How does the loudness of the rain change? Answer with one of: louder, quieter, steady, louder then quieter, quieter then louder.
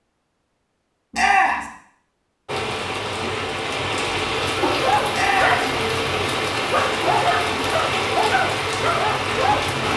steady.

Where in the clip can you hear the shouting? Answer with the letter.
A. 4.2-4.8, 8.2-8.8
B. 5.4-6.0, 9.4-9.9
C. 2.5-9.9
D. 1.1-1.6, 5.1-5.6
D.